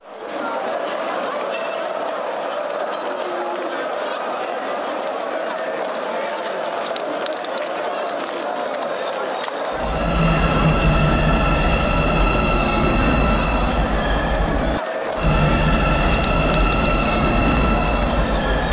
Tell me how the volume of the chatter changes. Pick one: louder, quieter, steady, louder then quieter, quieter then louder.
steady.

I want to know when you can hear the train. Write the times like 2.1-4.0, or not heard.
9.7-18.6.